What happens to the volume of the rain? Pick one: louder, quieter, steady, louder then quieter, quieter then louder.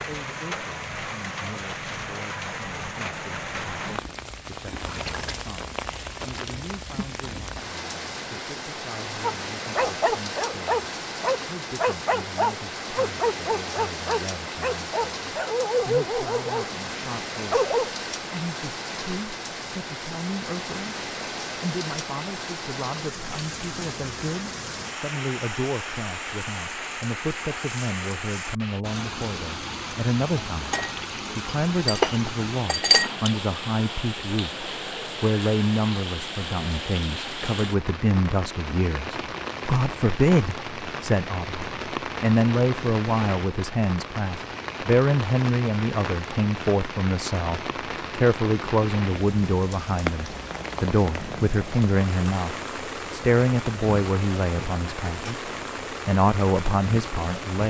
steady.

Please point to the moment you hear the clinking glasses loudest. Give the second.
33 s.